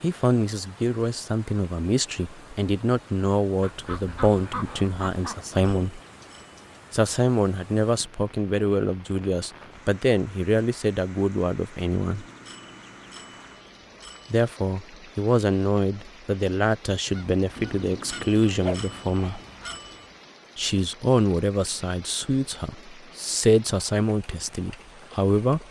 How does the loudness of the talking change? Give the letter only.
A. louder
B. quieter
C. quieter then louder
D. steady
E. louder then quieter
D.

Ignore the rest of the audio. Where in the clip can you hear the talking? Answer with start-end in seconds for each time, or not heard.
0.0-6.0, 6.9-12.2, 14.3-19.4, 20.6-25.6.